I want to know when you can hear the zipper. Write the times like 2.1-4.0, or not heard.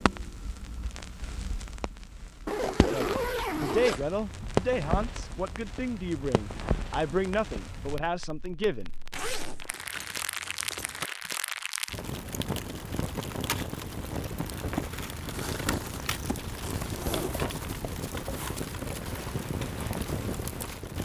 2.5-4.0, 9.1-11.1, 15.3-17.4.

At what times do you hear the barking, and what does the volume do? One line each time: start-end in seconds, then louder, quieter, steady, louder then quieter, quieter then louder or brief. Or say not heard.
not heard.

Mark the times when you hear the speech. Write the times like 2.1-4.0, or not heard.
2.8-8.9.